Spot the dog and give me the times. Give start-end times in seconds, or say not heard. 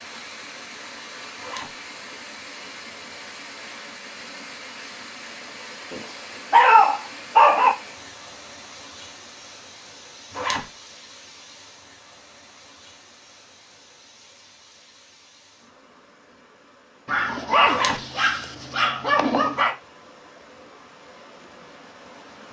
5.9-7.8, 17.1-19.8.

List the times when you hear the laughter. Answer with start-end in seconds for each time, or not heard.
not heard.